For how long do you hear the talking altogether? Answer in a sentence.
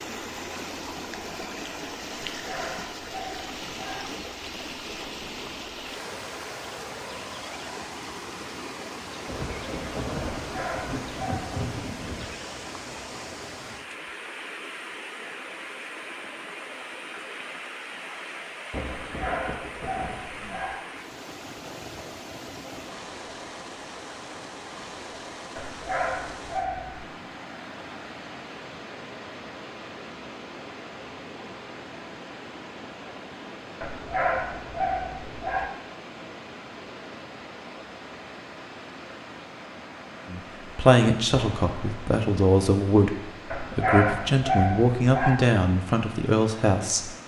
The talking can be heard for 7 seconds in total.